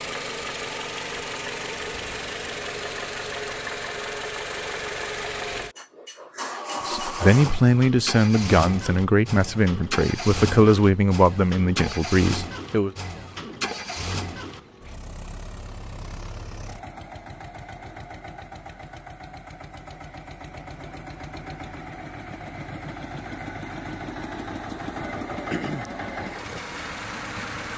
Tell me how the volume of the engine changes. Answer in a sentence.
The volume of the engine goes down, then up.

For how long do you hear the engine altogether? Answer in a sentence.
You can hear the engine for 28 seconds altogether.